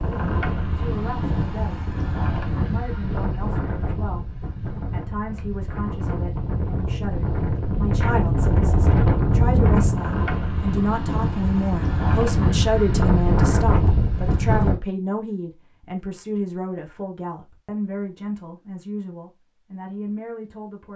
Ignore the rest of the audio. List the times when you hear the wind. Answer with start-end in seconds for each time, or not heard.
0.0-14.8.